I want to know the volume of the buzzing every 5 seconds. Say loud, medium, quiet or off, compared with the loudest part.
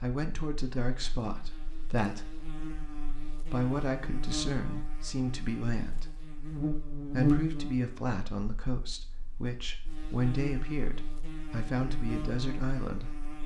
medium, loud, medium.